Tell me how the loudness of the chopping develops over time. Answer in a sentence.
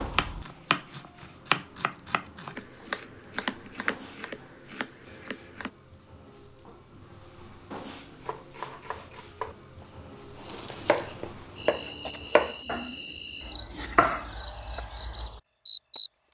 The loudness of the chopping goes down, then up.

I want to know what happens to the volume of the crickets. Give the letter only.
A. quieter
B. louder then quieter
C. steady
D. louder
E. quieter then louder
D.